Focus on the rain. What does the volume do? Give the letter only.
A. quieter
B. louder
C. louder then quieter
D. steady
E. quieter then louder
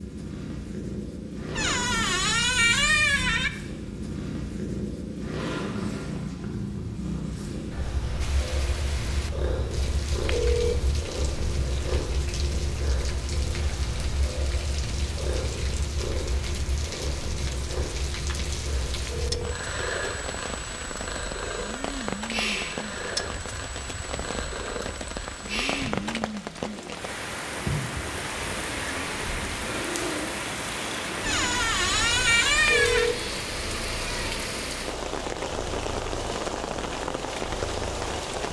B.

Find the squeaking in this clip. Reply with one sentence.
You can hear the squeaking from 1.6 to 3.5 s, from 21.4 to 22.1 s and from 31.2 to 33.1 s.